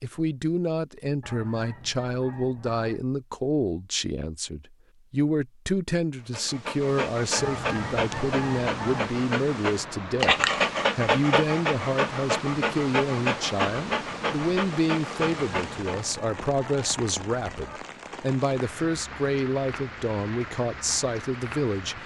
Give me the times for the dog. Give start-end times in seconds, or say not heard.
6.3-16.0.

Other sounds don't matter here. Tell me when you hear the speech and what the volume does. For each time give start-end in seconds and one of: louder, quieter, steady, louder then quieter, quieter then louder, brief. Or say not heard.
0.0-22.0 steady.